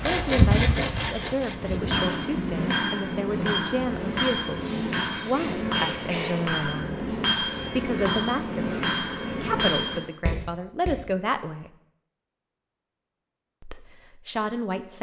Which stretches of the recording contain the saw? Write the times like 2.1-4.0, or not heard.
0.0-2.2.